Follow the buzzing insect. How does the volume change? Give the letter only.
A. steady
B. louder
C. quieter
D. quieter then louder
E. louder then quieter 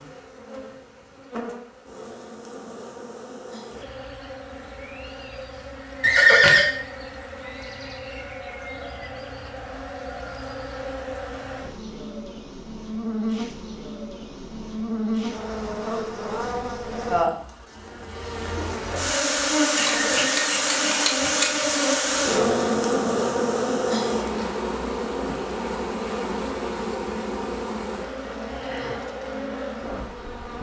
E.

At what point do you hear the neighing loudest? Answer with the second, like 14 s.
6 s.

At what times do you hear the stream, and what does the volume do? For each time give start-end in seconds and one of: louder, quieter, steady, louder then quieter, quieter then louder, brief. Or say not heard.
not heard.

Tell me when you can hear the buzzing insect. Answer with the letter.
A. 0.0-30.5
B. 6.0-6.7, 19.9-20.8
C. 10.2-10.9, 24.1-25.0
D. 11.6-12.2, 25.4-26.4
A.